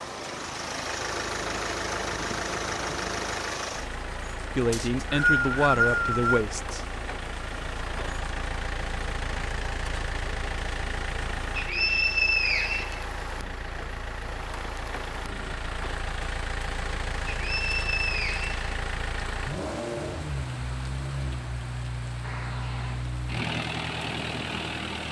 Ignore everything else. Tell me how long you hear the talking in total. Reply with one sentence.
The talking can be heard for 2 seconds in total.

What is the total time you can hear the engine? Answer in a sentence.
The engine can be heard for 25 seconds in total.